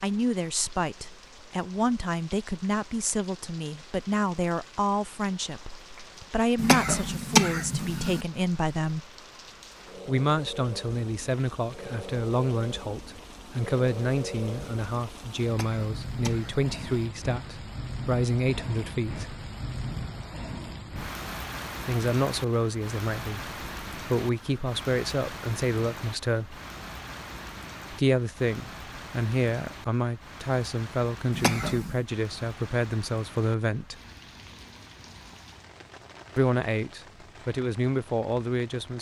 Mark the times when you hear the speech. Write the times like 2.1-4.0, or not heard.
0.0-9.1, 10.1-19.4, 21.9-26.6, 27.9-34.0, 36.4-38.9.